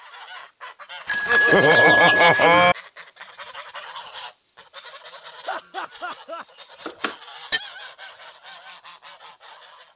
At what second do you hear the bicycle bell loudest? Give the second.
2 s.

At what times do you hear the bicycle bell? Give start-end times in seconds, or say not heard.
1.1-2.8, 6.8-7.6.